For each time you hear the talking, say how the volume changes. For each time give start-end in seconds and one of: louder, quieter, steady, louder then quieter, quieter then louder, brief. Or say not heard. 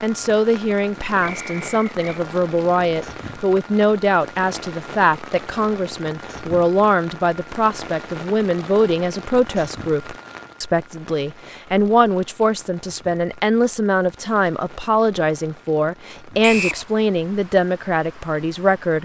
0.0-19.0 steady.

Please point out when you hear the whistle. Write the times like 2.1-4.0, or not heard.
1.2-2.2, 16.4-16.9.